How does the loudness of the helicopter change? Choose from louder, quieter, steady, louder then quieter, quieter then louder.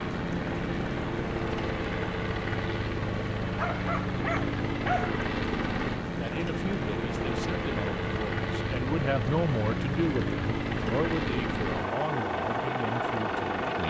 steady.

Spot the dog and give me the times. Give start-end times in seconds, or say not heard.
3.5-5.2.